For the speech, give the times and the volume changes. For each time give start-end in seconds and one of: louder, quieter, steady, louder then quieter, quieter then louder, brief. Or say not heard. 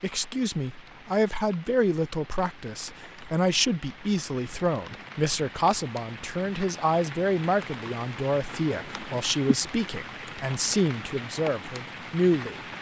0.0-12.6 steady.